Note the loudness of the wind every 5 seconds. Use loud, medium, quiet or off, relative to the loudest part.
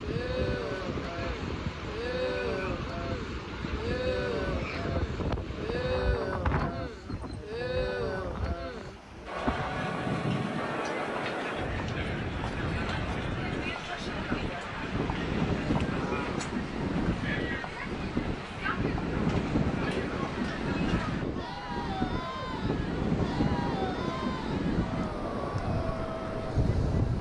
medium, medium, loud, loud, loud, loud.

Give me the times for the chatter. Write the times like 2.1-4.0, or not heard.
0.0-27.1.